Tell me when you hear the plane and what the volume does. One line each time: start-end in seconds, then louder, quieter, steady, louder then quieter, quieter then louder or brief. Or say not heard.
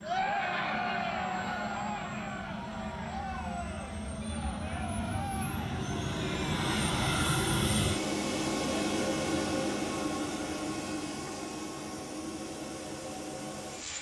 0.0-13.9 louder then quieter.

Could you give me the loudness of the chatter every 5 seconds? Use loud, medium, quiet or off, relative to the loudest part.
loud, medium, off.